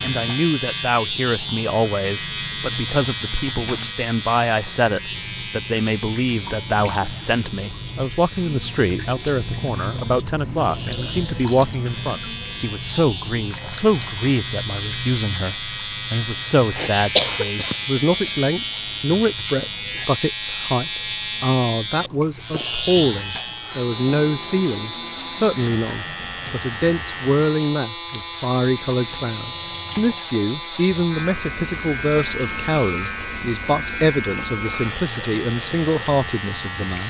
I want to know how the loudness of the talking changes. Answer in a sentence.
The loudness of the talking stays about the same.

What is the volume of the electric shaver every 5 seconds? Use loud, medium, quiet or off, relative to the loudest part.
loud, medium, medium, loud, loud, loud, loud, loud.